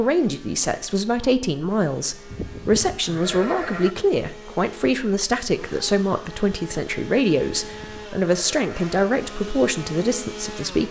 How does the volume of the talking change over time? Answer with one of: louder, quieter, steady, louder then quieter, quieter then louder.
steady.